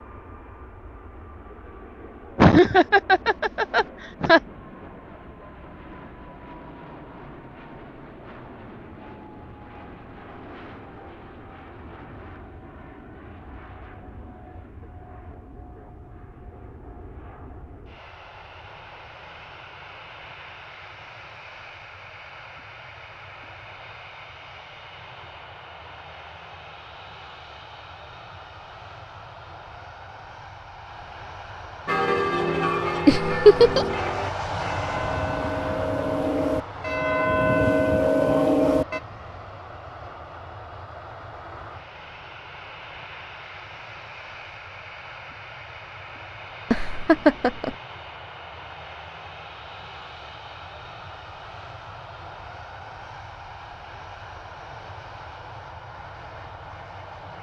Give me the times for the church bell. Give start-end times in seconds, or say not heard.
31.9-39.0.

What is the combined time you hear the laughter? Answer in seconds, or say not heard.
4 s.